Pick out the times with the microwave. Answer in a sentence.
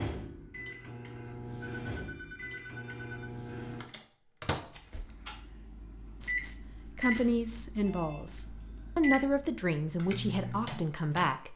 You can hear the microwave from 0.0 to 11.3 s.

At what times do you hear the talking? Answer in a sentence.
You can hear the talking from 6.2 to 11.5 s.